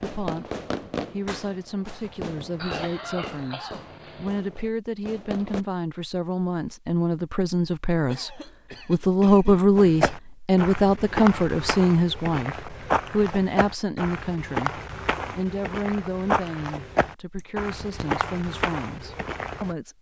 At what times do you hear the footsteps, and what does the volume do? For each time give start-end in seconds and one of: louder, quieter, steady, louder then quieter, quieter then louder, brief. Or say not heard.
9.8-19.8 steady.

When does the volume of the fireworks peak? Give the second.
1 s.